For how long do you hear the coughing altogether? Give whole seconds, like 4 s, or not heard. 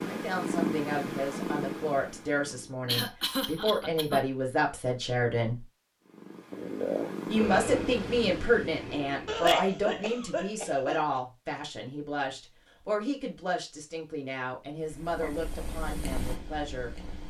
3 s.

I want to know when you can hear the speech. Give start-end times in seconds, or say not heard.
0.0-5.7, 7.2-16.9.